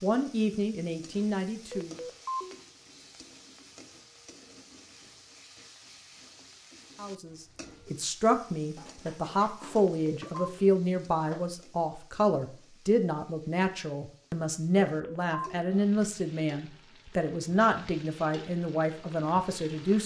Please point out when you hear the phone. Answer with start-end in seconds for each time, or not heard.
1.7-2.5, 9.8-10.6, 14.8-15.6.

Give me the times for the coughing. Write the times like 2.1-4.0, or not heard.
not heard.